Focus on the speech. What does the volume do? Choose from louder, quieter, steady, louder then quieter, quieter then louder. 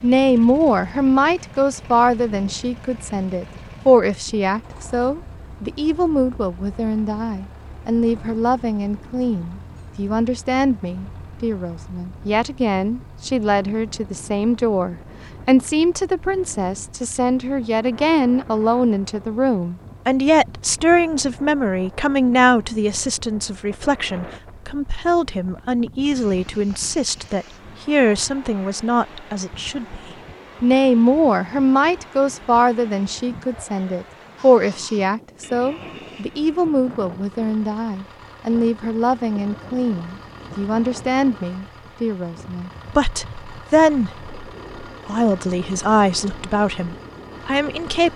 steady.